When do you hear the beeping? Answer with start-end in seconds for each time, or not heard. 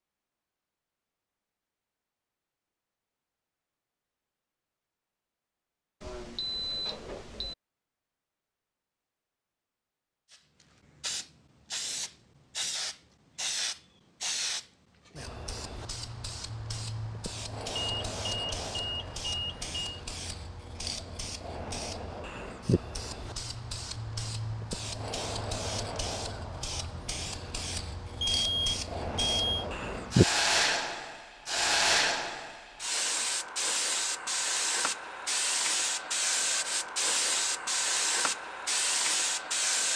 6.0-7.5, 17.8-20.0, 28.2-29.6.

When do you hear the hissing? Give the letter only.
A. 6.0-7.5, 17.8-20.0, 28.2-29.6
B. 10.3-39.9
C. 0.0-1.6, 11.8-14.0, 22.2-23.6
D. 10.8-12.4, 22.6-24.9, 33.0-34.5
B.